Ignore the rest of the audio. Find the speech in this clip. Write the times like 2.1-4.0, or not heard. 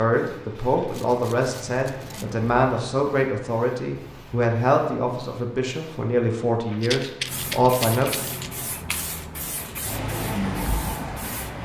0.0-8.1.